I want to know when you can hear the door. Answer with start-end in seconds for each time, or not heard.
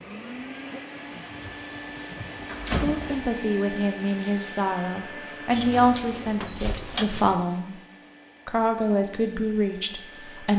1.3-3.3, 5.5-7.3.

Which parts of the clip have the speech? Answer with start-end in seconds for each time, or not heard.
2.8-7.8, 8.4-10.5.